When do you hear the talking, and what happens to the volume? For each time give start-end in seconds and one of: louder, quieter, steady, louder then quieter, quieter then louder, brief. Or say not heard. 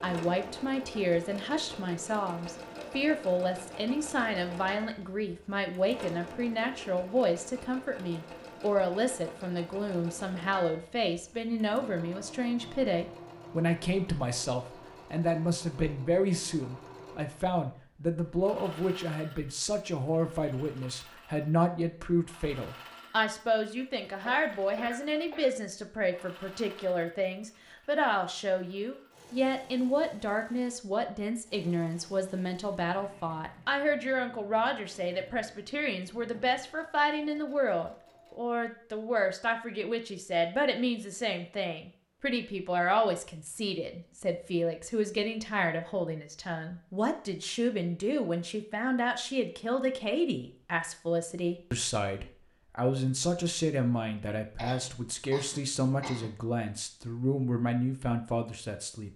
0.0-59.1 steady.